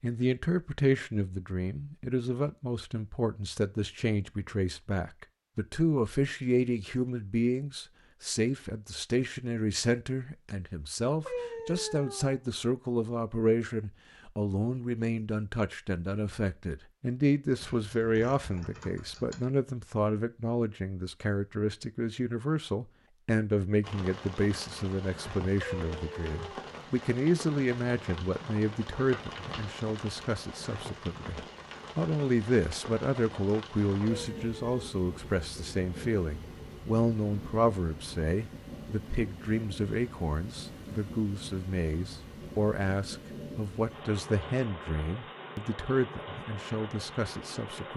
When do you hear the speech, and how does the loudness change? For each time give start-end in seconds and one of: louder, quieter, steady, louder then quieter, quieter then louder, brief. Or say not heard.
0.0-47.9 steady.